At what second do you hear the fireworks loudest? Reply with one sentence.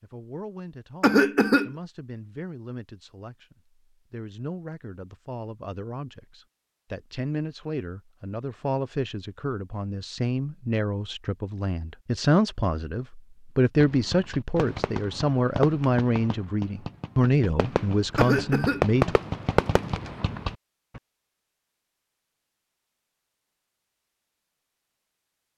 The loudest moment of the fireworks is at 19 seconds.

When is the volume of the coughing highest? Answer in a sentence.
The volume of the coughing peaks at 1 second.